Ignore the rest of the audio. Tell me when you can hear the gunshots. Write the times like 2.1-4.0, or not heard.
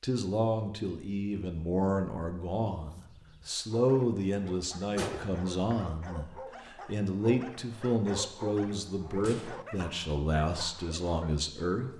5.0-5.8.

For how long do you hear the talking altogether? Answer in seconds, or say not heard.
12 s.